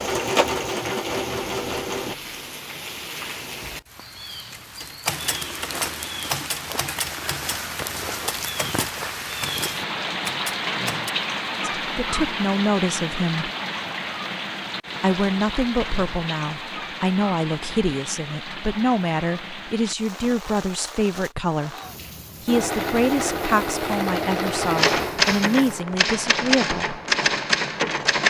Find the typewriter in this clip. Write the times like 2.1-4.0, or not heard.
4.8-11.1, 24.8-28.2.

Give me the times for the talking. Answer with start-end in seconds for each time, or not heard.
11.8-13.5, 15.0-21.8, 22.4-27.0.